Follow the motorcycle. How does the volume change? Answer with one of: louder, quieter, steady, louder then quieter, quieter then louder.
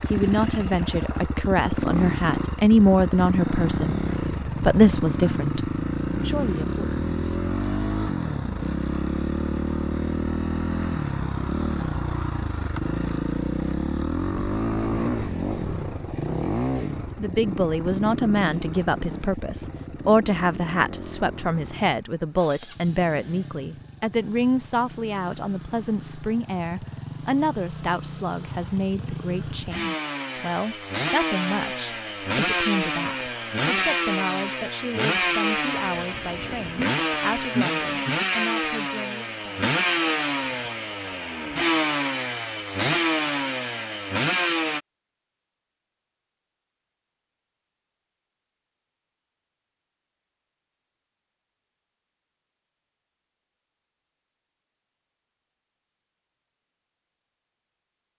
quieter then louder.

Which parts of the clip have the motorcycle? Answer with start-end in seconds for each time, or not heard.
0.0-44.8.